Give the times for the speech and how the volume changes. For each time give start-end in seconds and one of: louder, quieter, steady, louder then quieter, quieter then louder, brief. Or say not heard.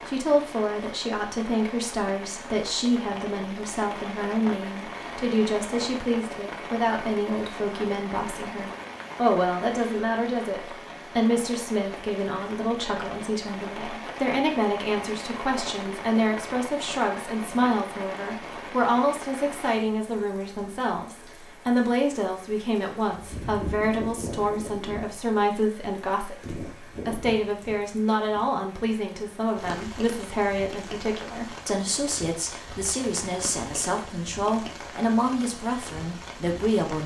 0.1-37.0 steady.